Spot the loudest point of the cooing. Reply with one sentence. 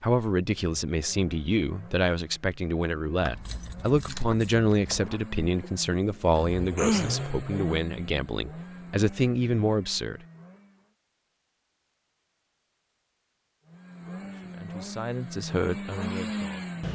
The loudest moment of the cooing is at 7 seconds.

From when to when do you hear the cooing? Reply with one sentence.
You can hear the cooing from 5.5 to 7.2 s.